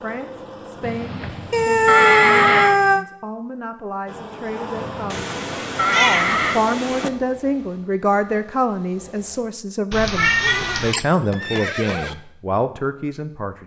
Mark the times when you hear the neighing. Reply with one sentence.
The neighing can be heard from 0.8 to 2.8 s, from 4.8 to 6.6 s and from 10.3 to 12.2 s.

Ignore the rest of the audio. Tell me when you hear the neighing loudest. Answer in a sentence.
The volume of the neighing peaks at 2 seconds.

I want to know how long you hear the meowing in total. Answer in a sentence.
The meowing can be heard for 5 seconds in total.